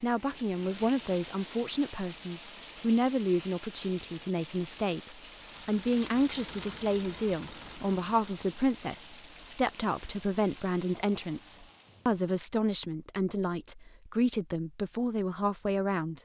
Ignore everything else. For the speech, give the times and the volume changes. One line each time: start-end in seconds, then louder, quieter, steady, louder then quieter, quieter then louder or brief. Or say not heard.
0.0-16.1 steady.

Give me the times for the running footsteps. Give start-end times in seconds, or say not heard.
not heard.